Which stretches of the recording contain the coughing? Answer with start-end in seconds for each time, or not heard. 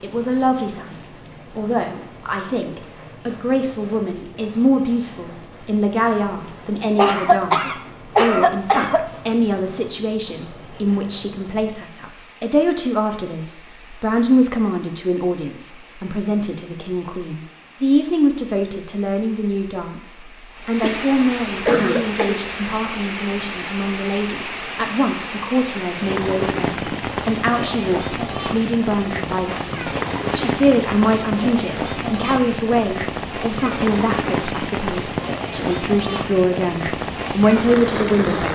7.0-9.1, 20.8-22.4.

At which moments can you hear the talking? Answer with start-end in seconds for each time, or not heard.
0.0-38.5.